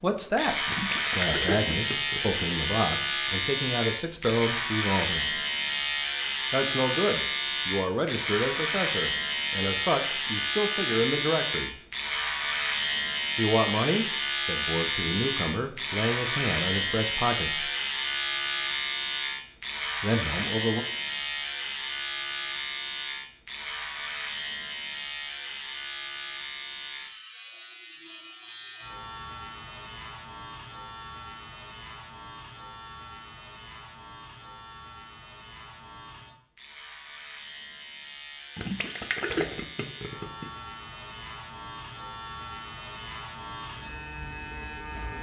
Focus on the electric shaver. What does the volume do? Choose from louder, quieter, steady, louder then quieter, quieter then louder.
quieter.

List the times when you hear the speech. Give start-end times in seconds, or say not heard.
0.0-0.6, 1.1-5.4, 6.5-11.8, 13.3-17.7, 20.0-20.9.